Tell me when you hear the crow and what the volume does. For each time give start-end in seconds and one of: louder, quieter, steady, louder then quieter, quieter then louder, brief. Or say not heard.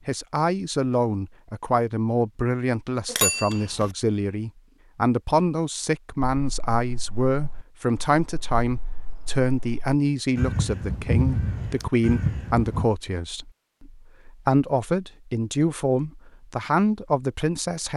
6.3-12.8 louder.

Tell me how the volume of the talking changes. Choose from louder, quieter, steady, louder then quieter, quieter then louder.
steady.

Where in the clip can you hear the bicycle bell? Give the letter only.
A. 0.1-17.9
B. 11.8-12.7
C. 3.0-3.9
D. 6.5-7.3
C.